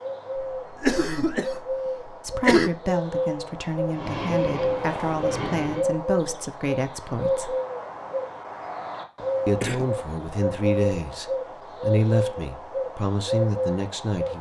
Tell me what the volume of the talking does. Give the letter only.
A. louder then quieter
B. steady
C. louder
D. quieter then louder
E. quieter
B.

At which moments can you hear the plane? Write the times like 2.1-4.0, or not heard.
3.9-5.9.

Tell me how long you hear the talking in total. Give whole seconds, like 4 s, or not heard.
10 s.